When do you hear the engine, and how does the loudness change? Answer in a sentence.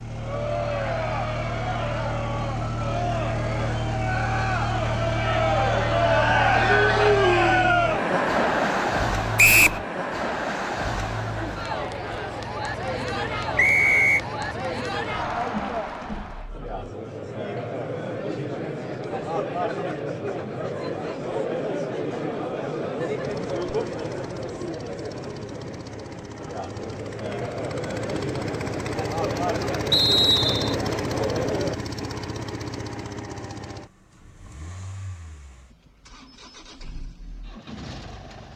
The engine can be heard from 0.0 to 16.7 s, getting quieter; and from 23.1 to 38.5 s, getting louder then quieter.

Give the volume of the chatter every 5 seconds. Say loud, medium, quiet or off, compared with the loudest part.
medium, loud, medium, medium, medium, medium, medium, off.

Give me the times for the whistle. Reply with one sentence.
You can hear the whistle from 9.3 to 9.8 s, from 13.6 to 14.2 s and from 29.9 to 30.8 s.